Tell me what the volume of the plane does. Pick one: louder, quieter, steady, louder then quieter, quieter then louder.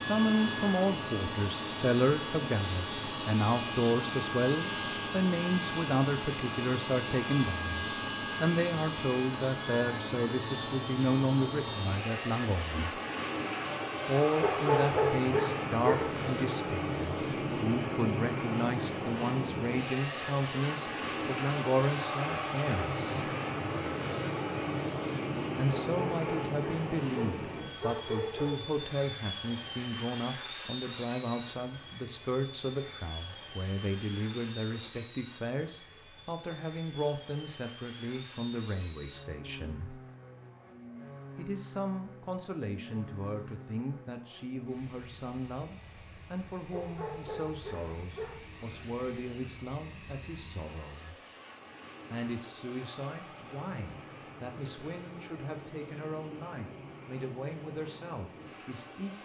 quieter.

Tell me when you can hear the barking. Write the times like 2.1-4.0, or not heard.
14.4-16.1, 25.7-28.6, 46.7-48.4.